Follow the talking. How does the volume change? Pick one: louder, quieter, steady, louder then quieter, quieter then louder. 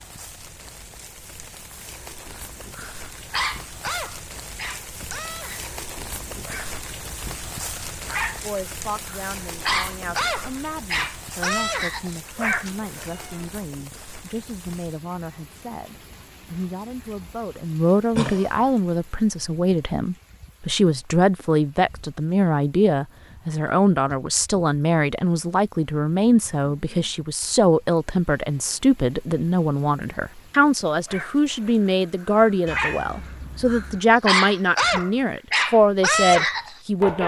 louder.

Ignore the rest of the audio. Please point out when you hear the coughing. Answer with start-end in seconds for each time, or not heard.
18.1-18.8.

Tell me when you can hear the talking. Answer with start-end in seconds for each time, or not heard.
8.4-37.2.